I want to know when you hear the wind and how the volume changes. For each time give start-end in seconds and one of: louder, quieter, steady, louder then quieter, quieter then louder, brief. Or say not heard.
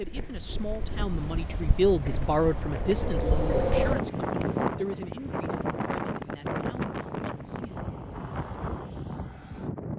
0.0-9.9 louder then quieter.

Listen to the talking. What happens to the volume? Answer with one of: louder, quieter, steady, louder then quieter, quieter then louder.
louder then quieter.